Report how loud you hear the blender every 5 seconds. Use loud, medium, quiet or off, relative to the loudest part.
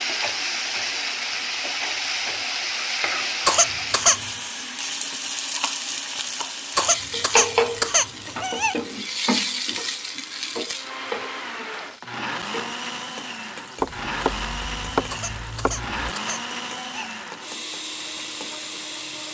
quiet, quiet, loud, loud.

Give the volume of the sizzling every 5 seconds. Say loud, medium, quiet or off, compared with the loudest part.
loud, loud, medium, quiet.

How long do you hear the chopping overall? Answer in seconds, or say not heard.
2 s.